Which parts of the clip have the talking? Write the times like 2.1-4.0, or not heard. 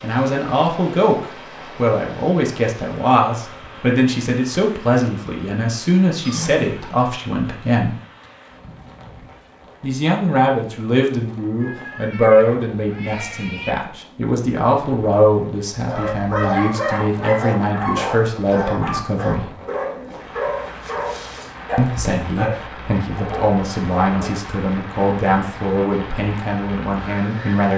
0.0-8.0, 9.8-19.5, 21.8-27.7.